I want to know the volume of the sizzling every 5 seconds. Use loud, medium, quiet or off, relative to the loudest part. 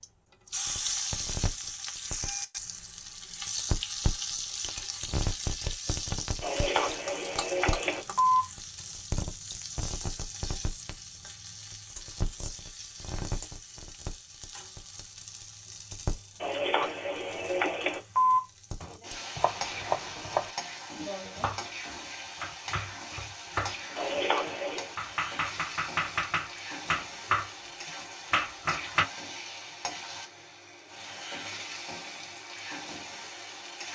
loud, loud, medium, medium, medium, medium, medium.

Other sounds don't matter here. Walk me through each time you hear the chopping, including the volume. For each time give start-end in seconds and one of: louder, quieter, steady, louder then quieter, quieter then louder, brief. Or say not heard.
18.8-27.5 quieter then louder
28.3-29.1 brief.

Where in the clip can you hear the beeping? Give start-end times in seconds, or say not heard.
6.4-8.4, 16.4-18.4, 23.9-24.9.